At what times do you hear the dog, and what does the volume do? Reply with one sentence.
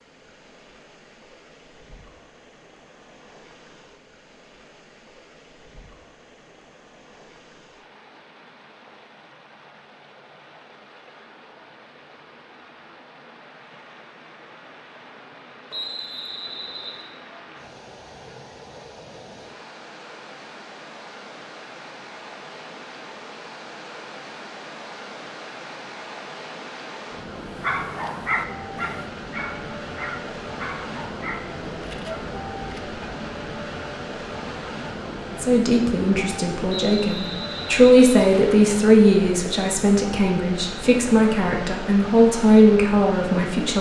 The dog can be heard from 27.4 to 33.0 s, getting quieter.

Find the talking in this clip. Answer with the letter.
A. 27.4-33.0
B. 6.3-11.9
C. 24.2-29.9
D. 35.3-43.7
D.